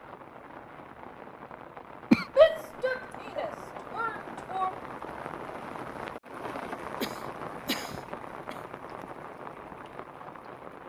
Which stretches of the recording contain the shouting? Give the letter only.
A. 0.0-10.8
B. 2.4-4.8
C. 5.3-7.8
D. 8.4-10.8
B.